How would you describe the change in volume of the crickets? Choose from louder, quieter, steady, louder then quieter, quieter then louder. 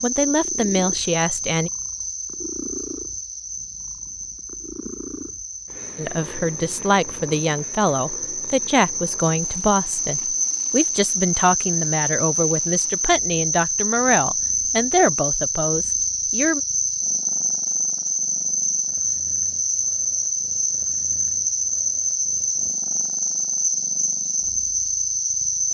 louder.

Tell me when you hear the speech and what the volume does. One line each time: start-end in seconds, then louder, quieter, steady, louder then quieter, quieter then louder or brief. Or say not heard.
0.0-1.7 brief
6.0-16.6 steady.